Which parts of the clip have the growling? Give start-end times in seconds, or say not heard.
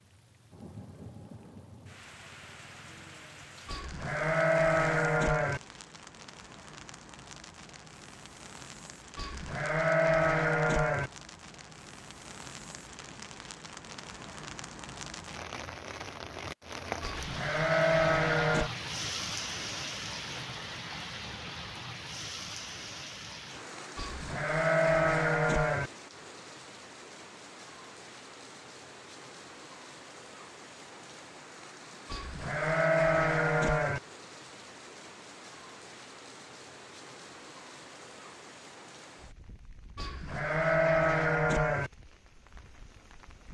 not heard.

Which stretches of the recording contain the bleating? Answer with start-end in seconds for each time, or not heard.
3.6-5.6, 9.2-11.1, 17.0-18.7, 23.9-25.9, 32.1-34.0, 40.0-41.9.